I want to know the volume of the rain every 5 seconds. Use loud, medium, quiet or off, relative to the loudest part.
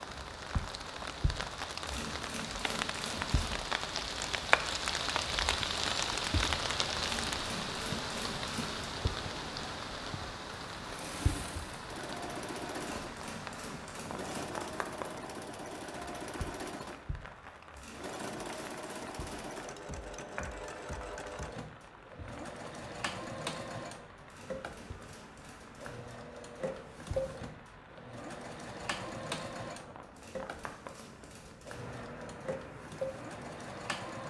loud, loud, medium, quiet, quiet, quiet, quiet.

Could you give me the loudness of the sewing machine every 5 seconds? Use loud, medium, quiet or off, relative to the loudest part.
off, off, loud, loud, loud, loud, loud.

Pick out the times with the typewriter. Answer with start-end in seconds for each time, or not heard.
1.9-3.5, 7.0-8.9, 12.8-14.7, 17.8-19.6, 24.2-26.1, 30.1-32.0.